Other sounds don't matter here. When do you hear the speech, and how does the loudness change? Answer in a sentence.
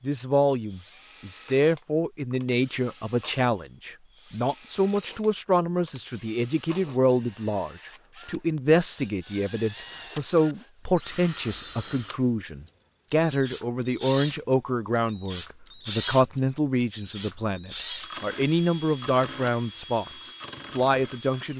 You can hear the speech from 0.0 to 21.5 s, at a steady volume.